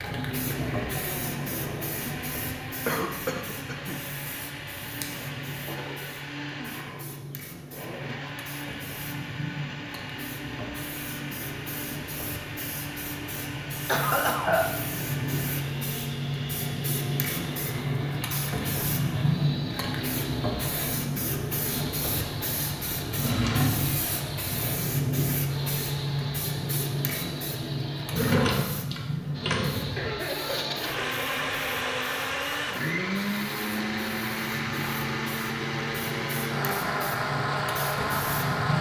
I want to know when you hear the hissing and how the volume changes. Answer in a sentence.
You can hear the hissing from 0.0 to 38.7 s, getting louder then quieter.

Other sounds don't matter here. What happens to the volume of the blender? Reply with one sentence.
The volume of the blender goes up.